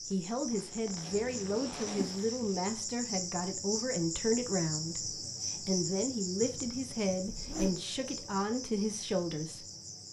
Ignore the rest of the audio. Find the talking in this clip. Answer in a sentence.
You can hear the talking from 0.1 to 9.7 s.